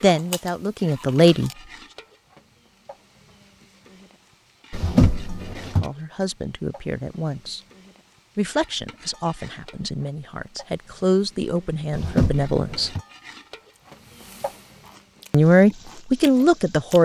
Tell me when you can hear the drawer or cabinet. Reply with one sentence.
The drawer or cabinet can be heard from 4.7 to 5.8 s and from 11.9 to 13.0 s.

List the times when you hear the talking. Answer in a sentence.
You can hear the talking from 0.0 to 1.5 s, from 5.6 to 7.6 s, from 8.3 to 12.9 s and from 15.3 to 17.0 s.